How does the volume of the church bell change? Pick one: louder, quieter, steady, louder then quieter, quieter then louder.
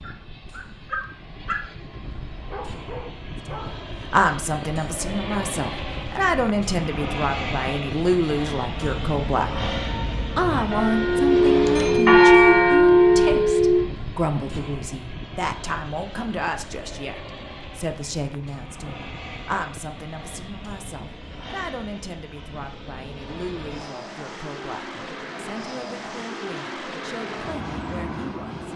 louder.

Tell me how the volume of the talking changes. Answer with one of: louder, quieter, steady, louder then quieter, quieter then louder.
quieter.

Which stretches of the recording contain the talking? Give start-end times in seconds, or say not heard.
3.5-28.7.